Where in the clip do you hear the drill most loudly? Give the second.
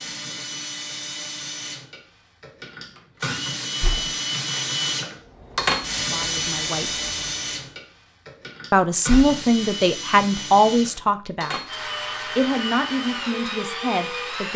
6 s.